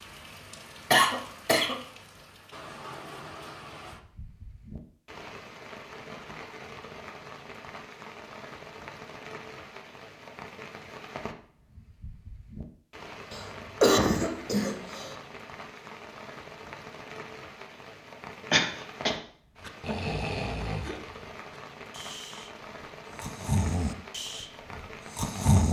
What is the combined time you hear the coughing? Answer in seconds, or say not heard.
3 s.